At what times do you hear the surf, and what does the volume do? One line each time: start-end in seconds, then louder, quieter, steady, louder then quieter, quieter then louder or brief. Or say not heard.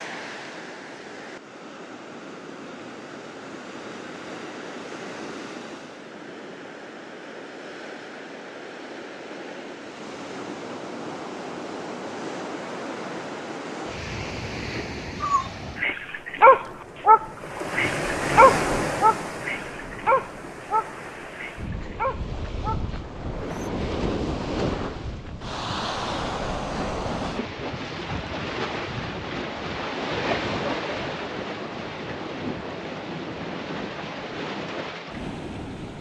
0.0-35.9 louder.